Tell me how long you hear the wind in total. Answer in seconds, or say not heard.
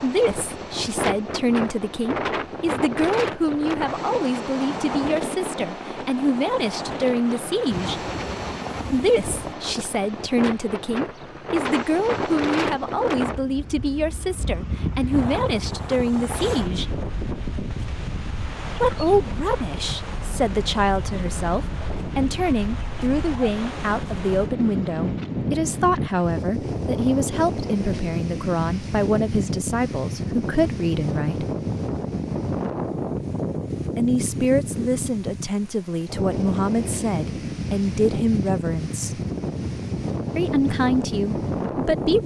42 s.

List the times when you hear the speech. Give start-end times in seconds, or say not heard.
0.0-8.0, 8.9-16.9, 18.8-31.4, 34.0-39.2, 40.4-42.2.